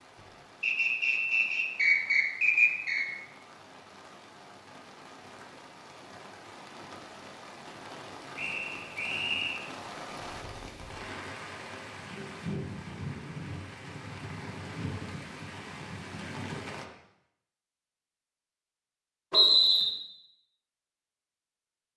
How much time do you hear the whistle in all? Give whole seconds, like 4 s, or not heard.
4 s.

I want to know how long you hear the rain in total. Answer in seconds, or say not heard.
17 s.